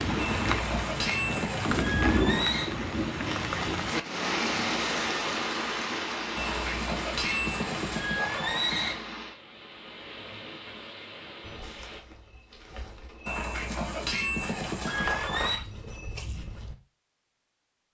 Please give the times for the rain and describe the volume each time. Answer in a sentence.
The rain can be heard from 0.0 to 12.0 s, getting quieter.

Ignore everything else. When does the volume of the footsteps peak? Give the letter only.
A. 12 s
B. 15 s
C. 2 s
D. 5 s
B.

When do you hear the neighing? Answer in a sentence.
You can hear the neighing from 0.1 to 2.7 s, from 6.3 to 8.9 s and from 13.2 to 15.6 s.